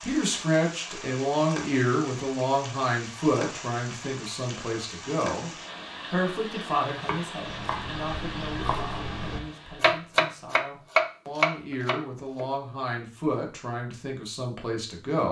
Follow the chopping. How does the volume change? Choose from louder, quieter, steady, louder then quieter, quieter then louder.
louder.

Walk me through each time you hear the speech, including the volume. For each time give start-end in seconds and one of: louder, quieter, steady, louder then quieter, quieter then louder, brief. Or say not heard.
0.0-5.5 quieter
6.1-15.2 quieter then louder.